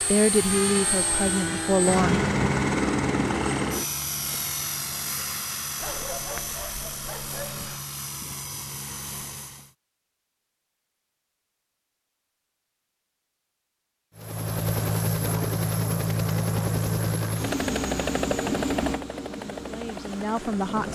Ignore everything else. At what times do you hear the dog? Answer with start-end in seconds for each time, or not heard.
5.8-7.8.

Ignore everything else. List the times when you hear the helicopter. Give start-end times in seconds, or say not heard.
0.0-9.8, 14.2-20.9.